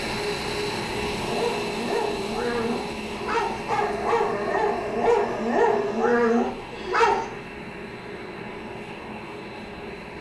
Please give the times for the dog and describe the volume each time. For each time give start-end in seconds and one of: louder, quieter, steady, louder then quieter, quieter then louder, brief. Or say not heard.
1.1-7.2 louder.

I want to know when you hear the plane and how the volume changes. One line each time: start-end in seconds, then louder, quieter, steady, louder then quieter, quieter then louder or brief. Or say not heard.
0.0-10.1 quieter.